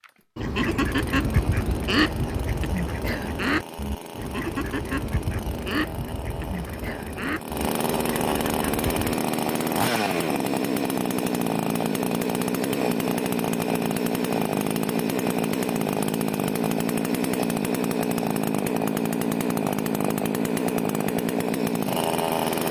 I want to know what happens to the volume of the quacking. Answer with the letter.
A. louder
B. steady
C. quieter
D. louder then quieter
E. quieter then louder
C.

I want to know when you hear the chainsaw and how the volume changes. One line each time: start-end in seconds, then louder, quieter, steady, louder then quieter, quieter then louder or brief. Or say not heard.
0.0-22.6 louder.